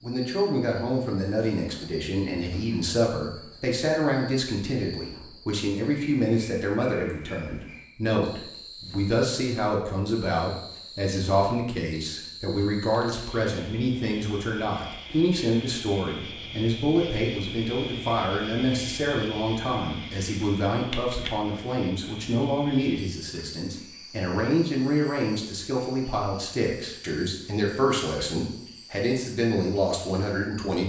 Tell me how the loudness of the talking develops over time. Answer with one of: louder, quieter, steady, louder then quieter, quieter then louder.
steady.